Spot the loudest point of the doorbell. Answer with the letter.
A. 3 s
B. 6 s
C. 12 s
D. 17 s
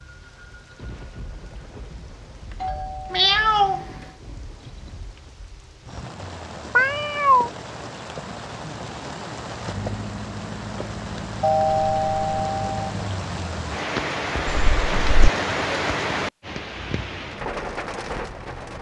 C.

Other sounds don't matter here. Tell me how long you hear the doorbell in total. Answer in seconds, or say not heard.
3 s.